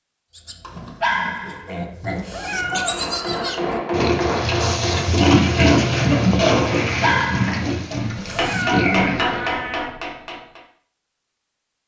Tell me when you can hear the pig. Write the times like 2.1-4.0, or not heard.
0.3-9.4.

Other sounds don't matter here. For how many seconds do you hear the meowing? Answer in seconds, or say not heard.
3 s.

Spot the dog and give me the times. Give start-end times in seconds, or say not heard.
0.6-2.6, 6.8-8.7.